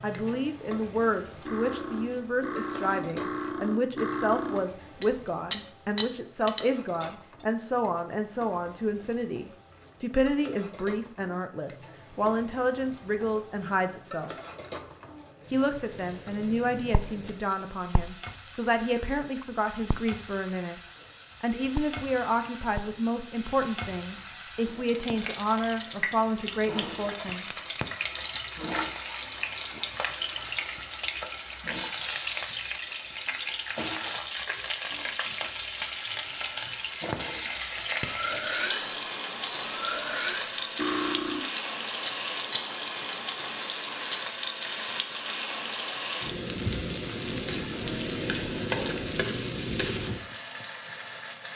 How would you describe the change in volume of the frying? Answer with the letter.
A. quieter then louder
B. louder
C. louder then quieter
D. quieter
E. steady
B.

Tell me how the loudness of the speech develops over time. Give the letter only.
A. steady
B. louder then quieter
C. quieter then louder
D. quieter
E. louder
A.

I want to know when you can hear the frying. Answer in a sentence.
You can hear the frying from 0.0 to 51.5 s.